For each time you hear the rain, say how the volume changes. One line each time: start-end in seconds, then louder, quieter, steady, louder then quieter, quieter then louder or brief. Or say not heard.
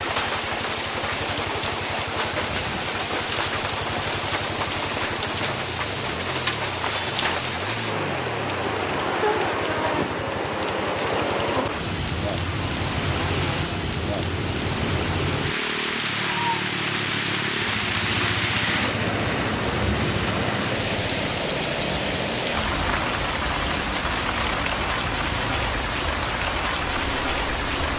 0.0-27.9 steady.